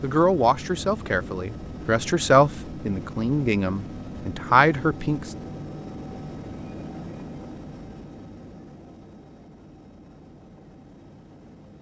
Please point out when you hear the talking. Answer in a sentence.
The talking can be heard from 0.0 to 5.3 s.